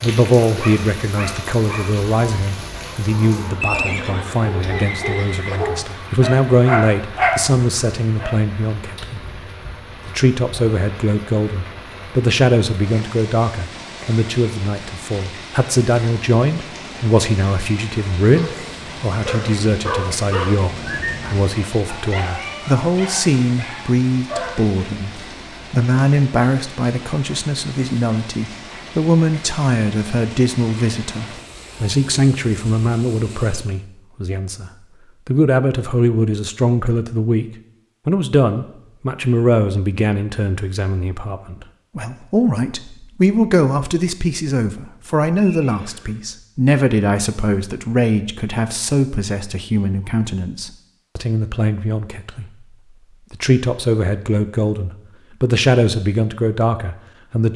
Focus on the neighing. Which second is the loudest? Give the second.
4 s.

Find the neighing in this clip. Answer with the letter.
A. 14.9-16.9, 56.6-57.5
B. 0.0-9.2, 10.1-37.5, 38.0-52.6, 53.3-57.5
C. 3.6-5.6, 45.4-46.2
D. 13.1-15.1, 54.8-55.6
C.